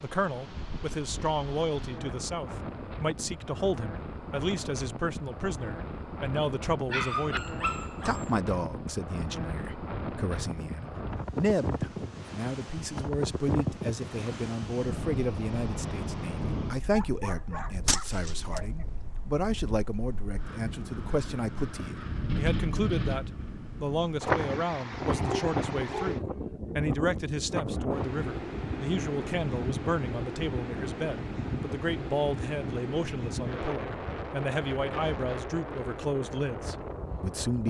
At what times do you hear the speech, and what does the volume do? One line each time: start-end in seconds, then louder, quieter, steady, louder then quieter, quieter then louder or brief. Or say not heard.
0.0-37.6 steady.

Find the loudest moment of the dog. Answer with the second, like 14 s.
7 s.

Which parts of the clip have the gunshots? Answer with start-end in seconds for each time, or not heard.
17.9-18.6.